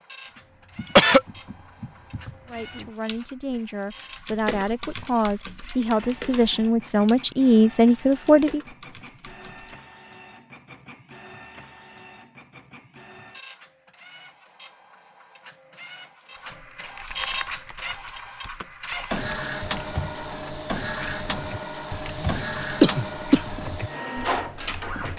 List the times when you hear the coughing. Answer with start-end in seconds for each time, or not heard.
0.7-1.2, 22.2-23.4.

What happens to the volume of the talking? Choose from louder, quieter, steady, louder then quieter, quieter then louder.
louder.